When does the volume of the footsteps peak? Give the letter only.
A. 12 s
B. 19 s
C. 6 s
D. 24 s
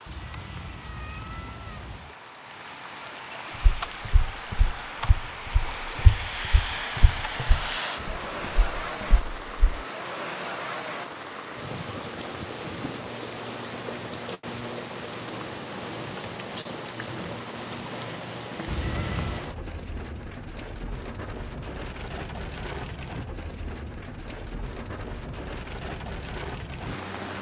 C.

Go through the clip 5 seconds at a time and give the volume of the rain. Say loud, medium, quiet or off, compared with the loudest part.
medium, loud, loud, loud, medium, loud.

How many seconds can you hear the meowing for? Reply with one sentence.
You can hear the meowing for 3 seconds altogether.